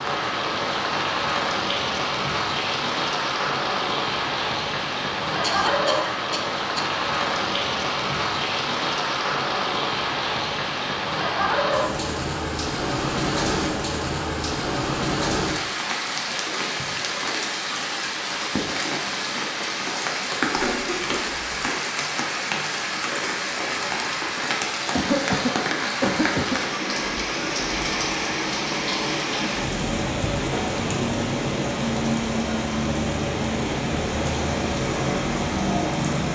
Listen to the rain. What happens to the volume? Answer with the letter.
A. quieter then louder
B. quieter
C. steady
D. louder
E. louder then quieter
C.